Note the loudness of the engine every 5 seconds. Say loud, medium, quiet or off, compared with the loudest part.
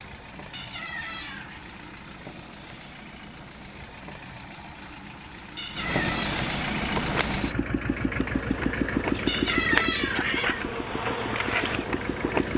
quiet, loud, medium.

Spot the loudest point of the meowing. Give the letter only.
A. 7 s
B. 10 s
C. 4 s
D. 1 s
B.